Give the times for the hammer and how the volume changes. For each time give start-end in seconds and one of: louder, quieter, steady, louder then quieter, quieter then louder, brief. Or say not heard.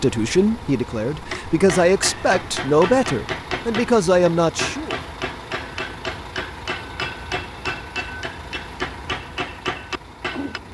1.3-10.6 steady.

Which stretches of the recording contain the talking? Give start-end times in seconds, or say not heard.
0.0-5.0.